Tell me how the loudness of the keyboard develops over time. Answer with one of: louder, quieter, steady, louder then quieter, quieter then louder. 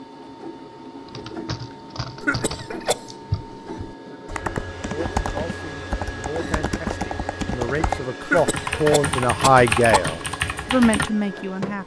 louder.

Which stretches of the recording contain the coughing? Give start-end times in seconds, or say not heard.
2.2-3.0, 8.2-10.2.